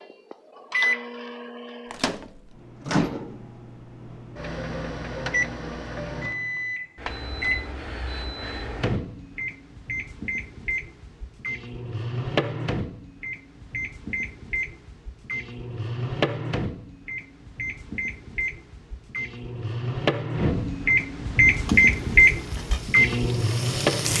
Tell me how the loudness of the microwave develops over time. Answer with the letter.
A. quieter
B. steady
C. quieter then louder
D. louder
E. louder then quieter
D.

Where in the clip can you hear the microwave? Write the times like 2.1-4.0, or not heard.
0.0-24.1.